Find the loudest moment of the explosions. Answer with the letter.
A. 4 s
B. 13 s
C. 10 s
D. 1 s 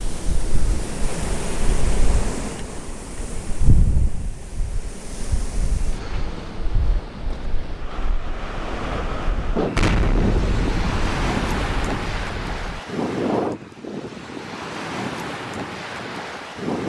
C.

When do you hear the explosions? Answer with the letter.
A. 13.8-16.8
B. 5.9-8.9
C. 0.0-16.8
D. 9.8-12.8
D.